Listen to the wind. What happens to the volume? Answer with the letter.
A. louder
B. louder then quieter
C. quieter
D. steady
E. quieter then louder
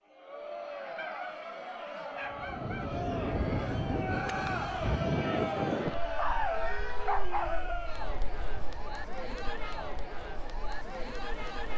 C.